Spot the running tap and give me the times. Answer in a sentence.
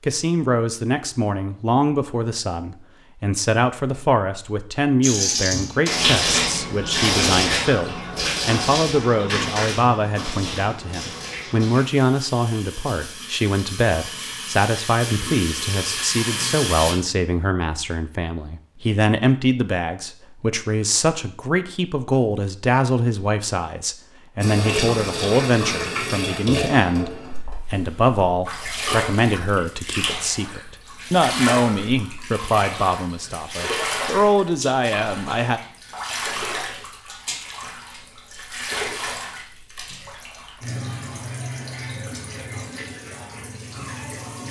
You can hear the running tap from 5.0 to 16.9 s and from 24.4 to 44.4 s.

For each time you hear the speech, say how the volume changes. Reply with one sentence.
The speech can be heard from 0.0 to 35.6 s, at a steady volume.